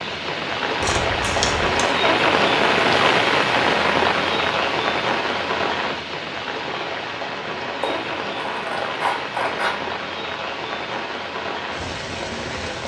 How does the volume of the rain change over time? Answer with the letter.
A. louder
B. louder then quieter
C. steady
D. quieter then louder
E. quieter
E.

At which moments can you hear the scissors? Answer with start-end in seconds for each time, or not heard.
0.8-1.9, 7.8-9.8.